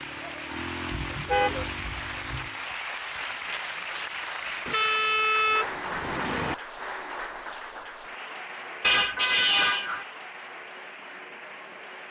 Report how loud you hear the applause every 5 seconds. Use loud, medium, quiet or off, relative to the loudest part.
loud, loud, medium.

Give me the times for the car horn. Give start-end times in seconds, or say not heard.
0.9-2.5, 4.7-6.5, 8.8-10.1.